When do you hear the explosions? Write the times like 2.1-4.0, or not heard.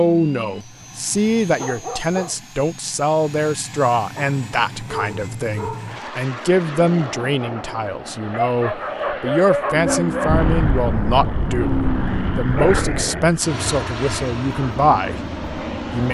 10.2-13.1.